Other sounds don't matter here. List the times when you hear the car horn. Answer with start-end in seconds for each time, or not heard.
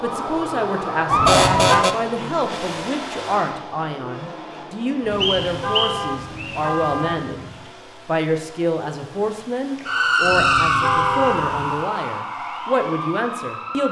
1.1-1.9, 5.0-7.7, 10.2-11.8.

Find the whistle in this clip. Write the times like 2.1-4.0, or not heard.
5.2-6.6.